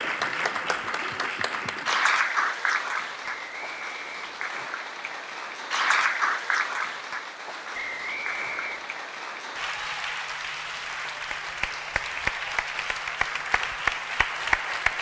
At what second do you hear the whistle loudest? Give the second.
8 s.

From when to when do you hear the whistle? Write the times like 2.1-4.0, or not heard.
3.2-4.5, 7.7-8.9.